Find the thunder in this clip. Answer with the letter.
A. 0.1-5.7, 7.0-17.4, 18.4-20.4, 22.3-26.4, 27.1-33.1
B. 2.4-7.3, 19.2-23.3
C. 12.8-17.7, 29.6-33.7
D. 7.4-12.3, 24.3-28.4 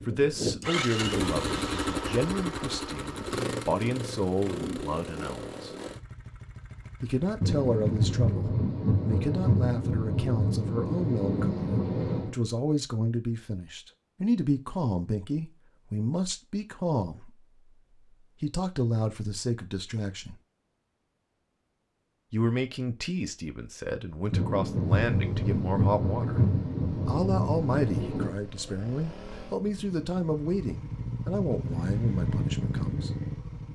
D.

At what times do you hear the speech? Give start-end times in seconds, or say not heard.
0.1-5.7, 7.0-17.4, 18.4-20.4, 22.3-26.4, 27.1-33.1.